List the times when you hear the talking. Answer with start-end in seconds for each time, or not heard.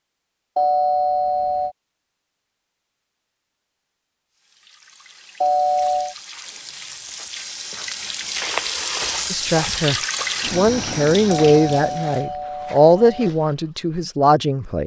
9.3-14.8.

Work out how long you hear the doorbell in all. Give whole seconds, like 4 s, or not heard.
4 s.